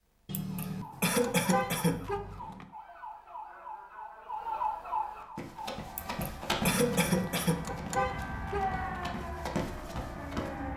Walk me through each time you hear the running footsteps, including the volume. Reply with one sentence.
The running footsteps can be heard from 5.3 to 10.7 s, getting quieter then louder.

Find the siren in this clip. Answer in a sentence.
The siren can be heard from 0.0 to 10.7 s.